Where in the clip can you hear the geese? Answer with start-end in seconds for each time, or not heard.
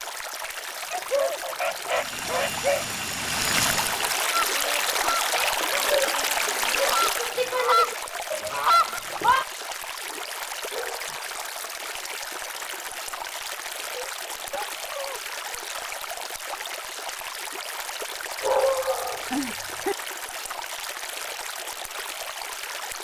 4.3-9.4.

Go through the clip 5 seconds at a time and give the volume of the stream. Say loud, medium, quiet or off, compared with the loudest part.
loud, loud, medium, medium, medium.